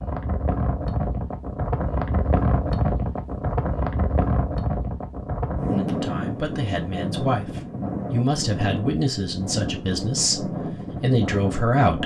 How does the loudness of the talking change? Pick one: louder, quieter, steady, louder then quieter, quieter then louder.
louder.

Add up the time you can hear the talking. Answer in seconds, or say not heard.
6 s.